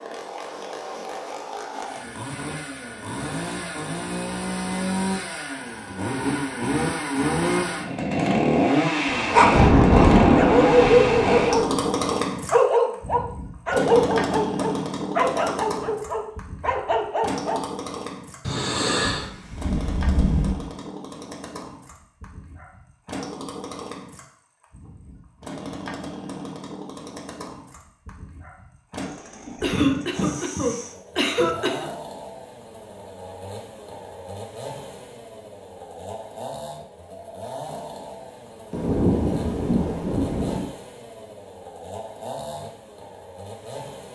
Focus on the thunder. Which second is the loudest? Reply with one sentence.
The volume of the thunder peaks at 10 seconds.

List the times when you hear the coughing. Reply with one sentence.
You can hear the coughing from 18.4 to 19.3 s and from 29.6 to 31.9 s.